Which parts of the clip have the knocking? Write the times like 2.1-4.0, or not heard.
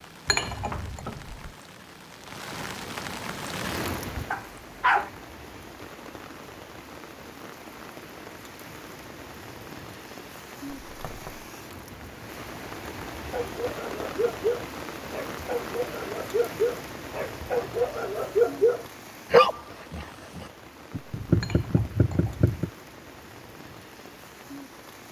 0.3-1.6, 10.9-11.5, 20.9-22.7.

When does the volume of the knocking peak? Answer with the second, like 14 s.
21 s.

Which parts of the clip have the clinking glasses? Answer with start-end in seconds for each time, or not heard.
0.2-1.1, 21.4-22.4.